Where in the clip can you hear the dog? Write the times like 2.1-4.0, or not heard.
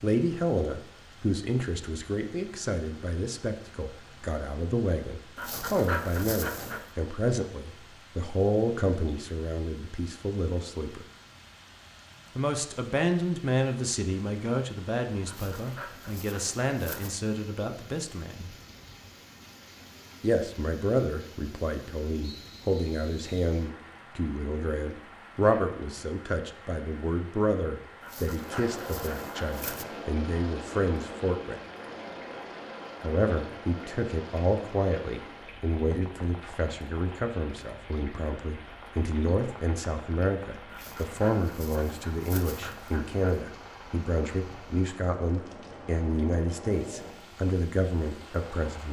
5.3-6.9, 15.2-17.1, 28.0-29.9, 40.7-43.4.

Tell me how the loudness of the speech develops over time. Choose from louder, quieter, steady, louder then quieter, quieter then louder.
steady.